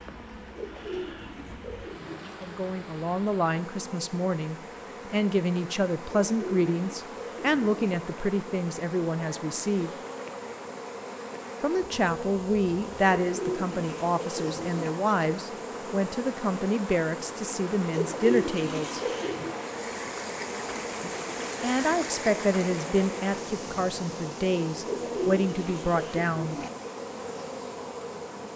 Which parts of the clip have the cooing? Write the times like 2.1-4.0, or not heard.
0.6-2.3, 6.0-8.0, 13.2-14.9, 17.9-19.6, 24.9-26.7.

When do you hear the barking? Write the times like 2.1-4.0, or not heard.
not heard.